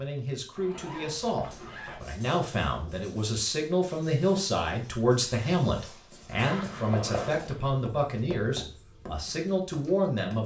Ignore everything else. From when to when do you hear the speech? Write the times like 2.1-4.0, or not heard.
0.0-10.4.